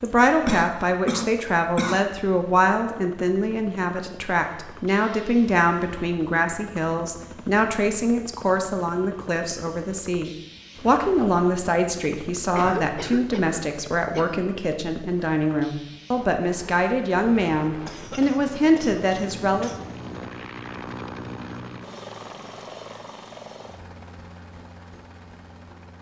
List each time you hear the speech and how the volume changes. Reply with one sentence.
The speech can be heard from 0.0 to 19.7 s, at a steady volume.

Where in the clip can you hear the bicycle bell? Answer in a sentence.
You can't hear the bicycle bell here.